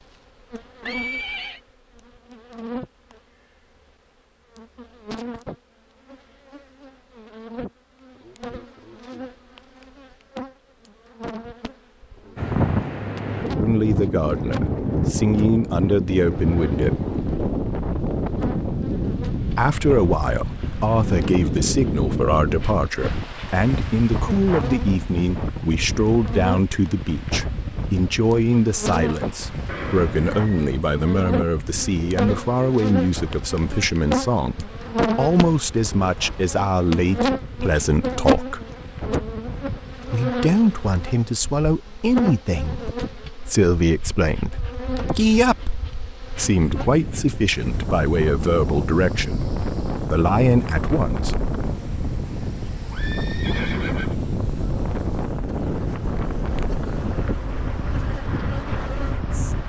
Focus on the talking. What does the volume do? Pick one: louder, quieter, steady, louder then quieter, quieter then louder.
steady.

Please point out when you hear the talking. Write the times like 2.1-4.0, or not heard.
13.6-17.0, 19.5-38.6, 40.1-51.4.